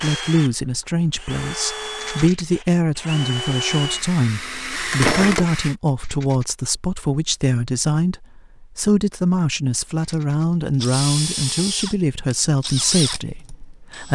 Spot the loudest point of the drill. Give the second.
5 s.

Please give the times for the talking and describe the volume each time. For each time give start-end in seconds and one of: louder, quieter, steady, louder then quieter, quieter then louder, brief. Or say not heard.
0.0-14.1 steady.